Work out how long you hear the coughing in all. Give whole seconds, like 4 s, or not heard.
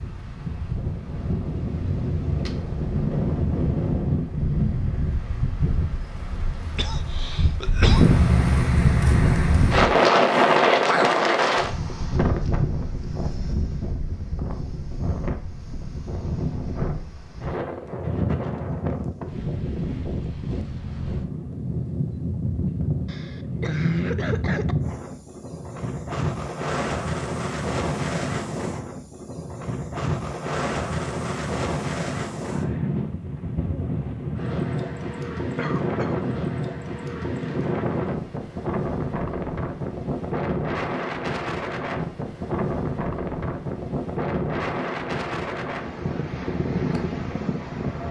4 s.